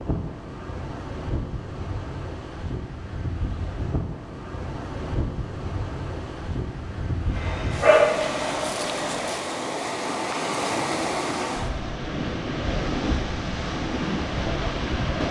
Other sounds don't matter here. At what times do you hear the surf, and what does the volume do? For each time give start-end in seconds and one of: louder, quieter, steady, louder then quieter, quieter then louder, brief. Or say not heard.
0.0-15.2 louder.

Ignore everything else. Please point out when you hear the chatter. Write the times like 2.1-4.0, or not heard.
not heard.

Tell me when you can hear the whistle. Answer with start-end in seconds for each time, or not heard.
not heard.